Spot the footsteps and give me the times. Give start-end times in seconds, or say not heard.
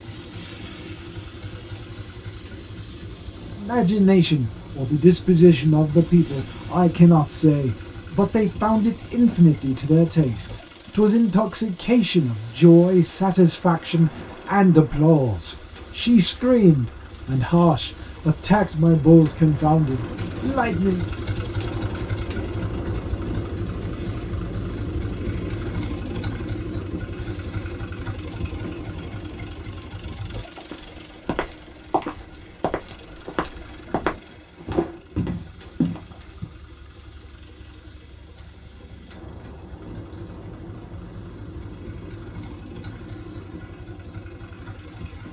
30.6-36.5.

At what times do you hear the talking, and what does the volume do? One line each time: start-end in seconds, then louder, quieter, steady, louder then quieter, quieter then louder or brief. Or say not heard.
3.5-21.1 steady.